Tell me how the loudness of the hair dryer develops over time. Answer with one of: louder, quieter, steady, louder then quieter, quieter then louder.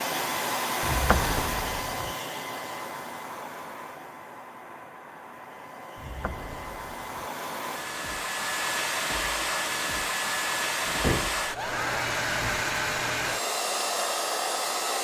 quieter then louder.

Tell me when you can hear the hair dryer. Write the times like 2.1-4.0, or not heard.
0.0-14.9.